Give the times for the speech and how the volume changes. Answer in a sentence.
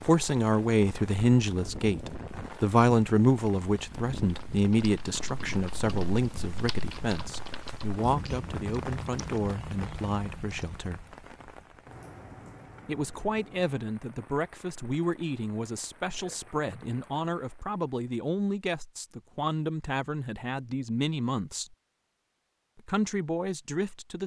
The speech can be heard from 0.1 to 11.0 s, getting quieter; from 12.8 to 21.8 s, at a steady volume; and briefly from 22.8 to 24.2 s.